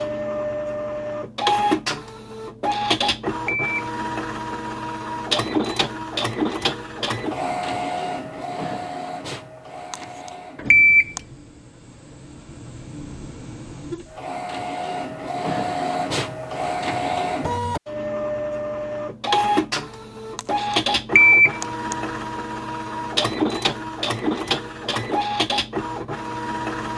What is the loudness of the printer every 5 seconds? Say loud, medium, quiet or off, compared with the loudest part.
loud, loud, medium, loud, loud, loud.